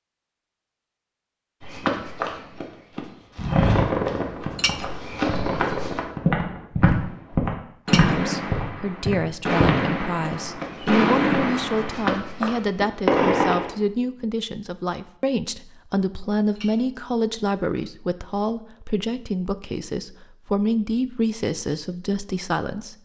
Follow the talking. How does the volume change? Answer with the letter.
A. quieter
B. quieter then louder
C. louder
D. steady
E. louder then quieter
D.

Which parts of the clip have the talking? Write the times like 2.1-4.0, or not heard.
8.1-23.0.